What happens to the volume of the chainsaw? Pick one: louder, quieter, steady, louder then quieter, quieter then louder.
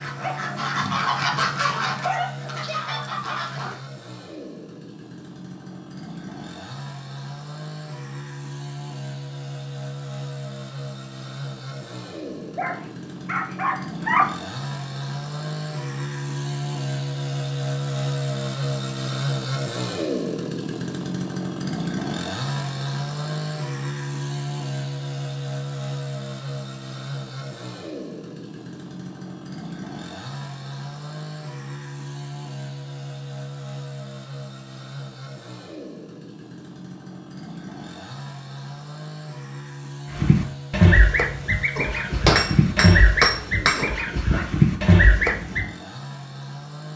louder then quieter.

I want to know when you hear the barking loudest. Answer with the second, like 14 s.
14 s.